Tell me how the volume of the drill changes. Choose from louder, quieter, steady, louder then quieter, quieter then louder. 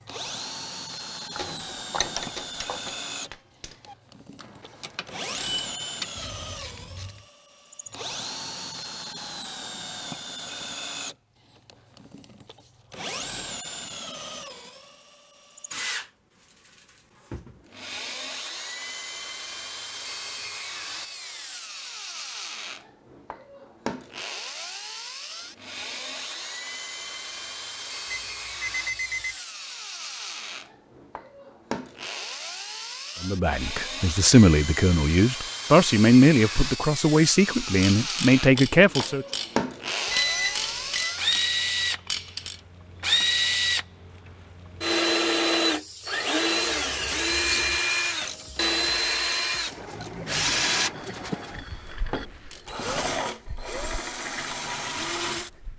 louder.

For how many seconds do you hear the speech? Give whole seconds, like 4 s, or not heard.
6 s.